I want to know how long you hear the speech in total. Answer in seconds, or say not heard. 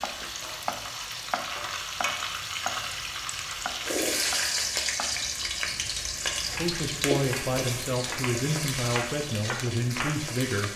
4 s.